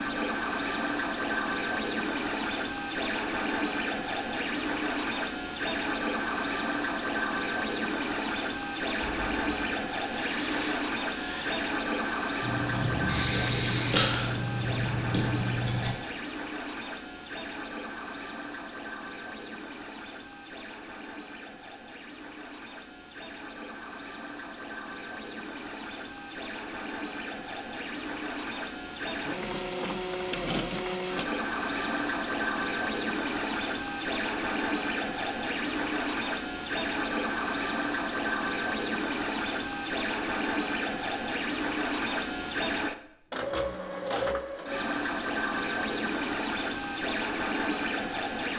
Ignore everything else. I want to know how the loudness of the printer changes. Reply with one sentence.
The volume of the printer goes down, then up.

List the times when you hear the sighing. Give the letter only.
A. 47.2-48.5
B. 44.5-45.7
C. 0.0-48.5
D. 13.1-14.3
D.